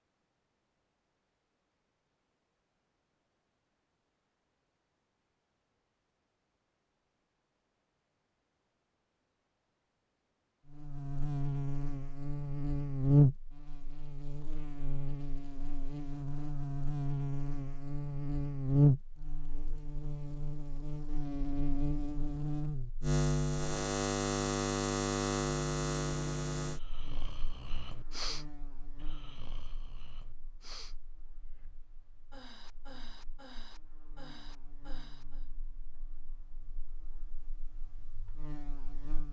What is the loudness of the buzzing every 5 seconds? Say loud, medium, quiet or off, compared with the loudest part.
off, off, loud, loud, loud, medium, quiet, quiet.